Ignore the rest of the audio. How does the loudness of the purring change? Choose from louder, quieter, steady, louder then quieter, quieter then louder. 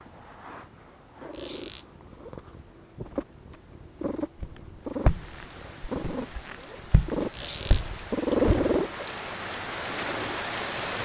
louder.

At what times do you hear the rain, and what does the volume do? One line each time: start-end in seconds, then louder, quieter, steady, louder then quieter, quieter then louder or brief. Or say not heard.
4.8-10.9 louder.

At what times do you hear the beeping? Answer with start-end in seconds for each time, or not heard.
not heard.